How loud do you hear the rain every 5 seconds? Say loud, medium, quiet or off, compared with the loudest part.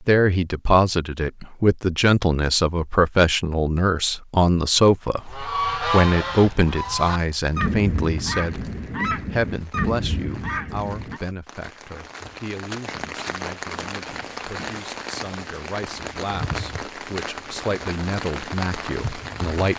off, quiet, loud, loud.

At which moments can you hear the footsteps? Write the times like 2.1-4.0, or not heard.
not heard.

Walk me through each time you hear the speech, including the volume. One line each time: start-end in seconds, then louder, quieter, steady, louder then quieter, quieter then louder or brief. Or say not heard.
0.1-19.7 quieter then louder.